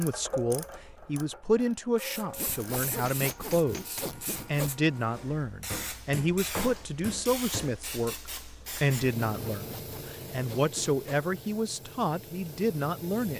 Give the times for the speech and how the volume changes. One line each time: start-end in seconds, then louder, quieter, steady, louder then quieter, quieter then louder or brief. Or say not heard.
0.0-13.3 steady.